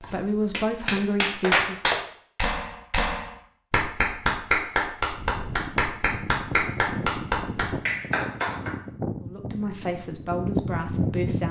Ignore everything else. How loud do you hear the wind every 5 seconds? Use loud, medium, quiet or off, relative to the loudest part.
off, medium, loud.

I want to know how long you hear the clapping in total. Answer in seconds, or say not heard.
9 s.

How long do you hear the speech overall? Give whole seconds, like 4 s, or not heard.
4 s.